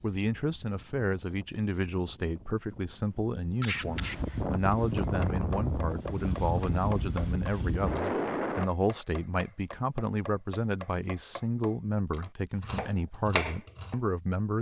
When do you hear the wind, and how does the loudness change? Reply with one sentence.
The wind can be heard from 0.0 to 8.7 s, getting louder.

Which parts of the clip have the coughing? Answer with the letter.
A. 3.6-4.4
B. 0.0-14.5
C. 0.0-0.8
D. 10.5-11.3
A.